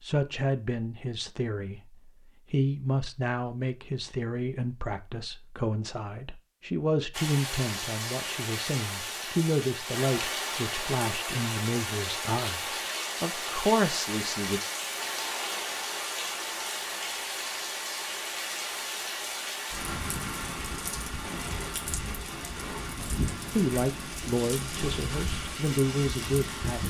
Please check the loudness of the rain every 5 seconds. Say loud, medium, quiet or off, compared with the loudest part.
off, loud, loud, loud, loud, loud.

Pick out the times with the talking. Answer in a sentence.
You can hear the talking from 0.0 to 14.6 s and from 23.6 to 26.8 s.